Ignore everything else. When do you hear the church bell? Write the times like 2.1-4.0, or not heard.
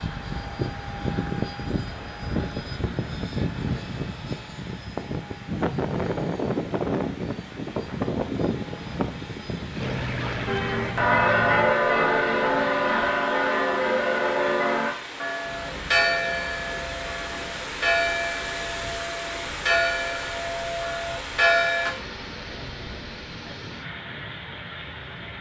10.4-21.9.